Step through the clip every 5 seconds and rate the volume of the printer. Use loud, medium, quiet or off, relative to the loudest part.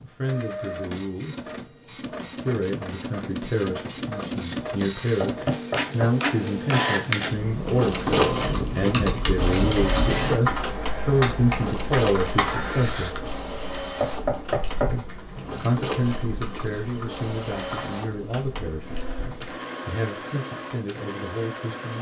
medium, loud, medium, medium, medium.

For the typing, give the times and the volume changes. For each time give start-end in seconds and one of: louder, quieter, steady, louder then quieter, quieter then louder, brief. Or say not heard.
8.2-19.6 quieter.